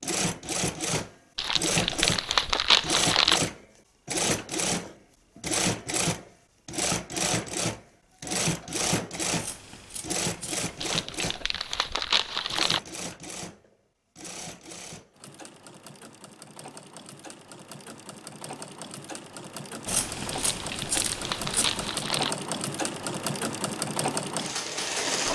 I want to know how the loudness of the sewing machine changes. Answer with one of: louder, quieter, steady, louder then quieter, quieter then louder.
quieter then louder.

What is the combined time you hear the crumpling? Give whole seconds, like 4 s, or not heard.
6 s.